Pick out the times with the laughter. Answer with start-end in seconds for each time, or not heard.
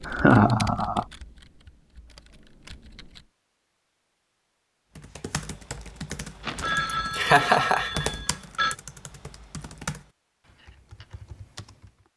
0.1-1.1, 7.1-8.1.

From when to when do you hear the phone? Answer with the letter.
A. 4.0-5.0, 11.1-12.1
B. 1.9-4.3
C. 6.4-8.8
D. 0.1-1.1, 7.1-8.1
C.